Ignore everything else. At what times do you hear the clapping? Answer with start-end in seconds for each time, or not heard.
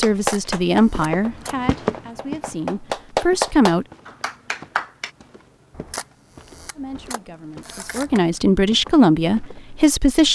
0.0-5.1.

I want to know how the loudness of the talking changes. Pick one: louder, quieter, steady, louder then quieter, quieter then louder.
quieter then louder.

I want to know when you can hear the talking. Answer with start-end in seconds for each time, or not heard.
0.0-3.9, 6.8-10.3.